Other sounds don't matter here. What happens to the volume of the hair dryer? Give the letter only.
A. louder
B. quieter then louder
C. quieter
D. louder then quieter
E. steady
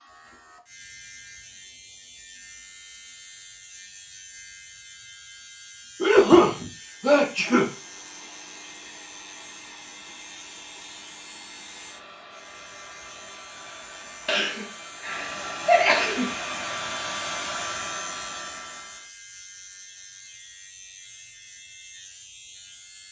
A.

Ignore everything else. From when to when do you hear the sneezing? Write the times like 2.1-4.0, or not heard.
6.0-7.7, 14.2-16.3.